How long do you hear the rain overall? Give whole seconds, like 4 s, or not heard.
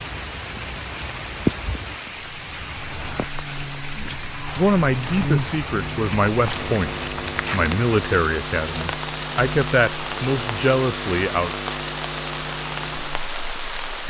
14 s.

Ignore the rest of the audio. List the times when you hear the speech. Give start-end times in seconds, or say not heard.
4.0-11.5.